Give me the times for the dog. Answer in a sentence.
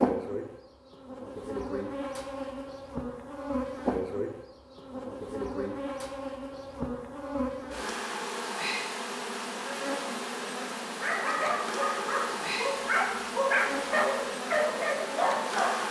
You can hear the dog from 10.9 to 15.8 s.